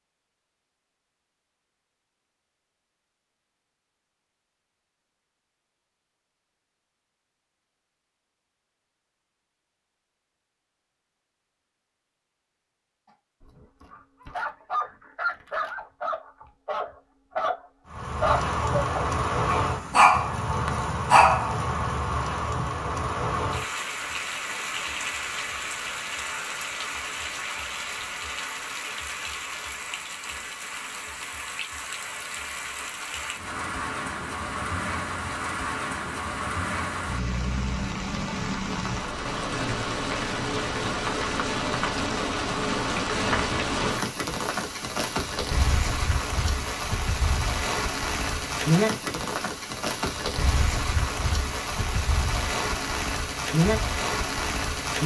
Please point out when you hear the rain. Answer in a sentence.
The rain can be heard from 17.9 to 55.0 s.